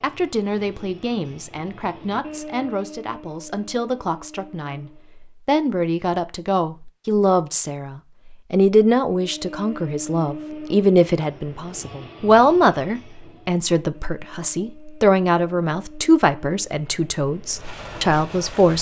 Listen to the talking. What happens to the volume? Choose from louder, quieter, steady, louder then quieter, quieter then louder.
louder.